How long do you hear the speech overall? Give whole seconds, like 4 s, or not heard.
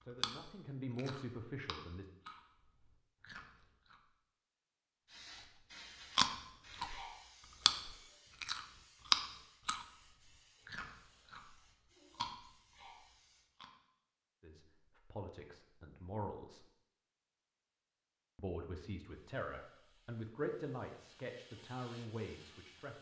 9 s.